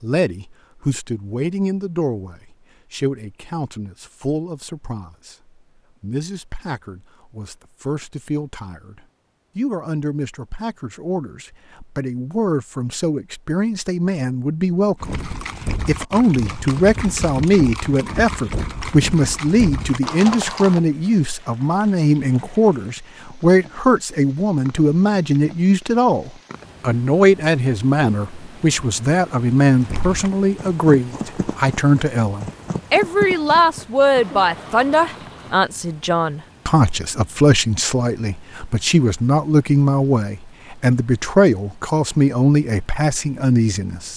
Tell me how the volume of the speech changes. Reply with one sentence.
The volume of the speech goes up.